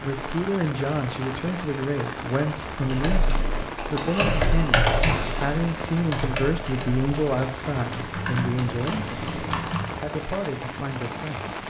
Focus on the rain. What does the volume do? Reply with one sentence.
The volume of the rain stays about the same.